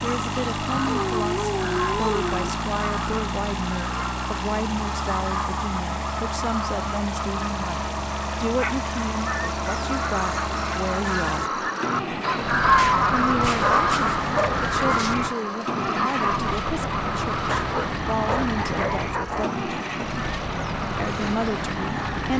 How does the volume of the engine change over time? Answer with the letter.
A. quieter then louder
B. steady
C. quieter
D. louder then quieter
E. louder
B.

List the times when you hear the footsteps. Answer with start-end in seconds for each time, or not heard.
not heard.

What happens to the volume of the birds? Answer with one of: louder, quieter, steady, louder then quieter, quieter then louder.
louder then quieter.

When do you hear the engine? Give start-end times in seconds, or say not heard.
0.0-22.3.